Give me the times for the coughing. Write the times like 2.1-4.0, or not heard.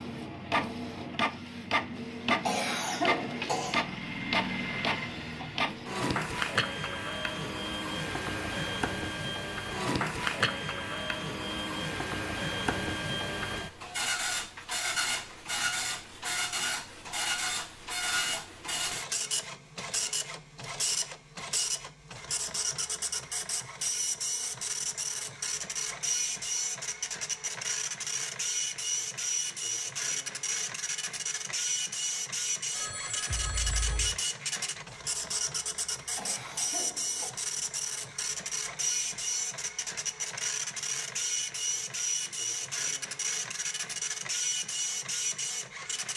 2.4-3.9, 36.1-37.4.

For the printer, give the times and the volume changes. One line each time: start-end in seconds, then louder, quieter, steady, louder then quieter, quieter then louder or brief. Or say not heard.
0.0-46.1 steady.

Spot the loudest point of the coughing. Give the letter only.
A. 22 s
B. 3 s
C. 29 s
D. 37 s
B.